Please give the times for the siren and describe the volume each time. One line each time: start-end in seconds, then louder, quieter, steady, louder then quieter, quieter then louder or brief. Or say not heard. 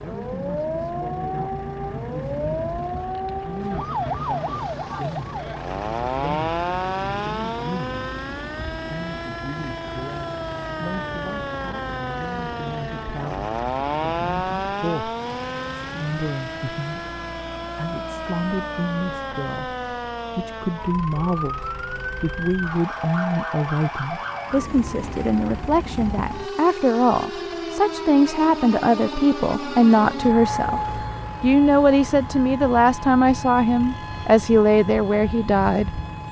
0.0-36.2 steady.